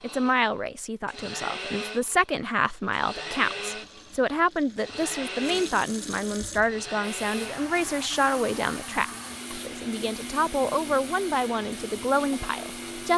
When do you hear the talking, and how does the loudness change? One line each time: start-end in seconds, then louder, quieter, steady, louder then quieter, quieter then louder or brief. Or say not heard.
0.0-13.1 steady.